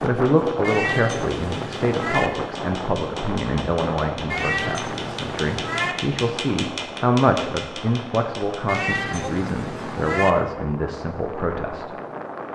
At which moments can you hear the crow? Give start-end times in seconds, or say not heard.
not heard.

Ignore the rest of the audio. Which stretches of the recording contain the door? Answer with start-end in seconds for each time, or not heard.
not heard.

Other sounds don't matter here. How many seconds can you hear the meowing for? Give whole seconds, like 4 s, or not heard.
5 s.